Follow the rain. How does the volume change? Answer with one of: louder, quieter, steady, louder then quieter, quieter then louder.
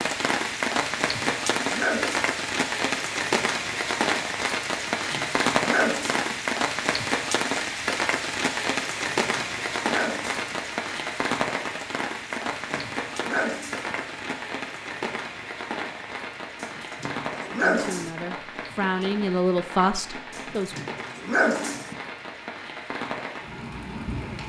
quieter.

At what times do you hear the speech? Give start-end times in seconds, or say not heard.
17.6-20.8.